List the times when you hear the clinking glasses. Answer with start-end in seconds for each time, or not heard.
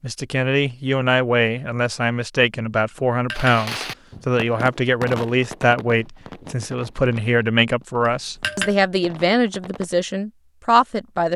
2.9-3.5, 8.1-8.8.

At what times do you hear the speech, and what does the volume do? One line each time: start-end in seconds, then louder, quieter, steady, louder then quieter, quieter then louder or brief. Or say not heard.
0.0-11.3 steady.